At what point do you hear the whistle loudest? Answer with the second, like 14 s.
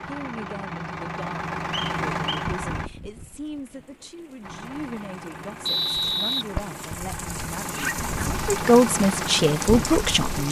6 s.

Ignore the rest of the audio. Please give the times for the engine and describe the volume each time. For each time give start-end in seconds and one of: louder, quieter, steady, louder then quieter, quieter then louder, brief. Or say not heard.
0.0-2.9 brief
4.4-10.4 louder.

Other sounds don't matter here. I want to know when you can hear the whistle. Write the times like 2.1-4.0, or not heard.
1.7-2.5, 5.7-6.5.